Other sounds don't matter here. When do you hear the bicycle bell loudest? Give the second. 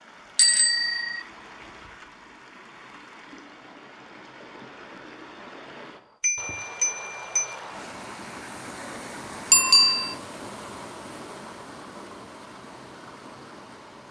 10 s.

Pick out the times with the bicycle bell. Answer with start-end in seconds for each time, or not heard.
0.3-1.2, 6.2-7.5, 9.5-10.2.